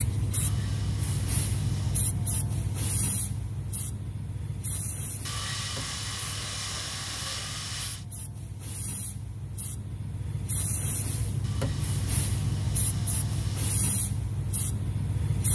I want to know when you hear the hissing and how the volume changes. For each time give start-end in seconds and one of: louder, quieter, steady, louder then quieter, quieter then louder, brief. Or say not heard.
0.0-15.4 quieter then louder.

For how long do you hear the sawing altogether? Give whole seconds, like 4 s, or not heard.
7 s.